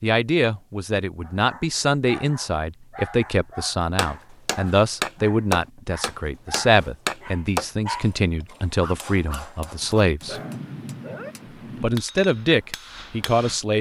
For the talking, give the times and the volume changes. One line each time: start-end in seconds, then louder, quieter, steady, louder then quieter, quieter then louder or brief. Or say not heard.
0.0-10.4 steady
11.8-13.7 brief.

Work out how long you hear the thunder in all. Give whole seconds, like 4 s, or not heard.
2 s.